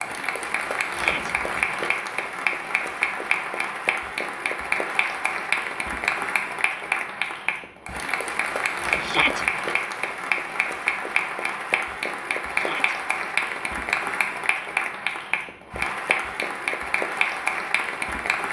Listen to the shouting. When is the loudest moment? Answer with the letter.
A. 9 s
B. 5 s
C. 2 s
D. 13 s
A.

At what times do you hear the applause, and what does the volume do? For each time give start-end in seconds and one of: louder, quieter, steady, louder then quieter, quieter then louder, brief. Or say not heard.
0.0-18.4 steady.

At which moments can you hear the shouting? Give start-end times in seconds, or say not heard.
0.9-1.4, 9.0-9.4, 12.5-12.9.